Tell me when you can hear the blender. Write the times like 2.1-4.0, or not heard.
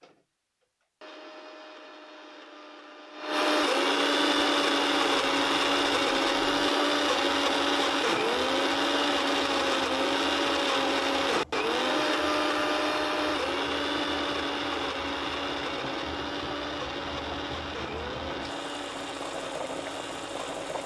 0.0-20.8.